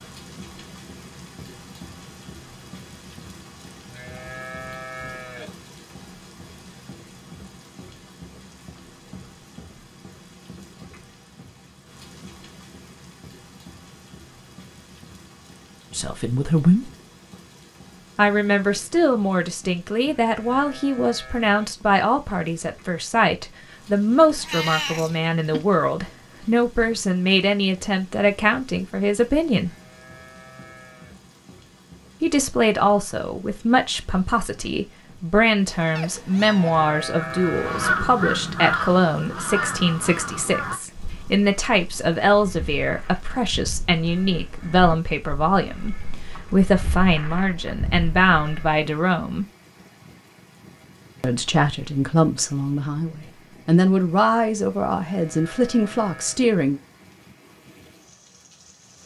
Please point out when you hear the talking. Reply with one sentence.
You can hear the talking from 15.9 to 16.9 s, from 18.1 to 29.7 s, from 32.2 to 49.5 s and from 51.2 to 56.8 s.